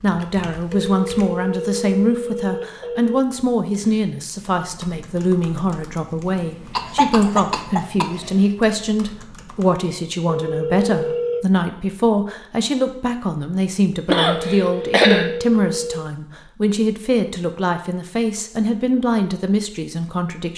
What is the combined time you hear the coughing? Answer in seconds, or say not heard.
3 s.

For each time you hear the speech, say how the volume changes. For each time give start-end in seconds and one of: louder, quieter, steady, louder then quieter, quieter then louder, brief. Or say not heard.
0.0-20.5 steady.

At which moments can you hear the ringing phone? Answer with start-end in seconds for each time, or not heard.
0.8-3.2, 10.2-11.4, 14.2-16.1.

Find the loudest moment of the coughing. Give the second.
15 s.